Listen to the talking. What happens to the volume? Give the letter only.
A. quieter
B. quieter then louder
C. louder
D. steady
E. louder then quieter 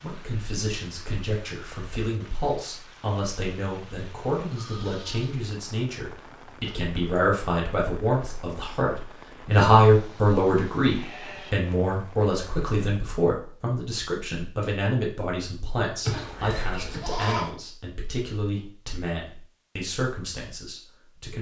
E.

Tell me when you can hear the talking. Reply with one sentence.
You can hear the talking from 0.0 to 21.3 s.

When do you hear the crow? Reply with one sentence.
The crow can't be heard in this clip.